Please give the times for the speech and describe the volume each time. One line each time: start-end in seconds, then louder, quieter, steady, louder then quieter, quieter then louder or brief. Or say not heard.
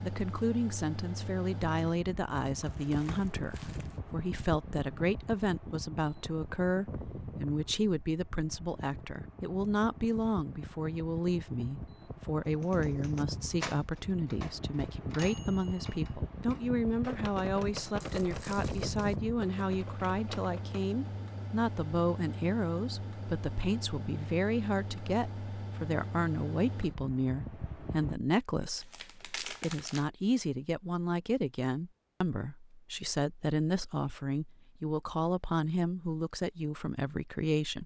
0.0-37.8 steady.